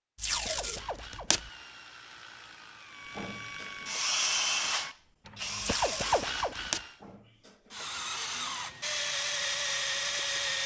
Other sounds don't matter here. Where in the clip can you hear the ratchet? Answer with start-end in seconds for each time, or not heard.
0.4-7.0.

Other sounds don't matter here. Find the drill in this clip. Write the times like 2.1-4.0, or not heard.
3.1-10.6.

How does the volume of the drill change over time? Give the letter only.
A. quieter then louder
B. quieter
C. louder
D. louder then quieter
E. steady
A.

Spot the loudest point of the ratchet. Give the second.
6 s.